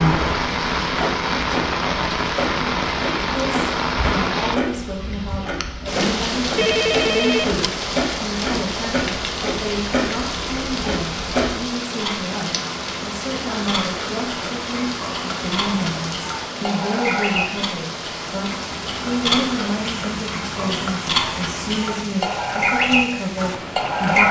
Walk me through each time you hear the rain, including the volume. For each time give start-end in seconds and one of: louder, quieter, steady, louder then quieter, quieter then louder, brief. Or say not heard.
0.0-24.2 quieter.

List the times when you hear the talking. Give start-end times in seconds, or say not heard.
3.3-24.2.